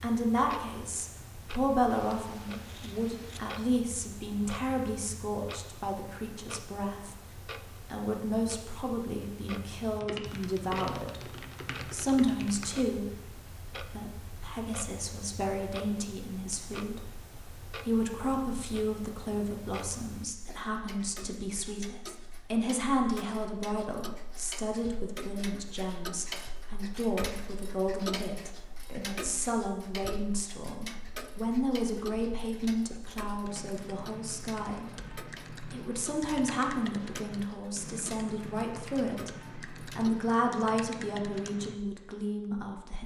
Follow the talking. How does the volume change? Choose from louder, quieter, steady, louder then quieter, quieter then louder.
steady.